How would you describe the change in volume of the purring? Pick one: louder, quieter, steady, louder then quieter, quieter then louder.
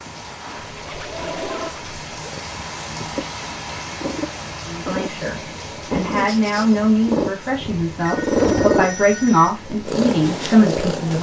louder.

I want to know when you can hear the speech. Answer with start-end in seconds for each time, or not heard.
4.7-11.1.